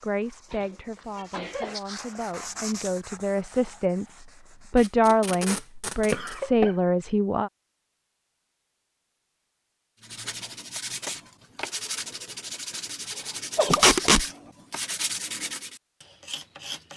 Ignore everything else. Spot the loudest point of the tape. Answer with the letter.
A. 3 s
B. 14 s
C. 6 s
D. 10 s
B.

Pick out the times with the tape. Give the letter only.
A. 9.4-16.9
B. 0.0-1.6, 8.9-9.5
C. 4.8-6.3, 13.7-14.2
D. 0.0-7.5
C.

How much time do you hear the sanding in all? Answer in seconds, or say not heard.
12 s.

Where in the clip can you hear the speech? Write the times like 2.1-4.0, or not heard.
0.0-7.5.